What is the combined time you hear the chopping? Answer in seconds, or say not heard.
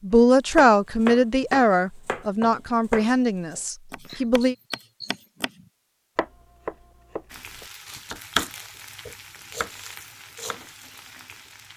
10 s.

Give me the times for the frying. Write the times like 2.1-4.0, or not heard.
7.2-11.7.